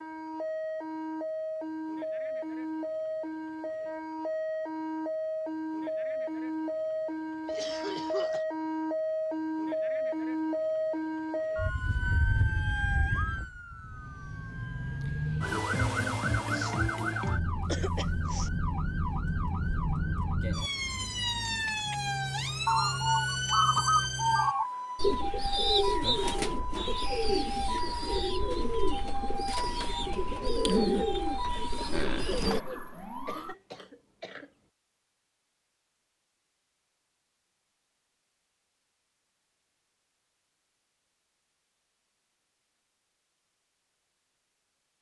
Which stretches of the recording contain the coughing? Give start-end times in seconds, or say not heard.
7.5-8.4, 16.5-18.5, 32.3-34.5.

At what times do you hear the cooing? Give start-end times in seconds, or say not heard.
22.6-32.6.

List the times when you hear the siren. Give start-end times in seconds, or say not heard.
0.0-33.5.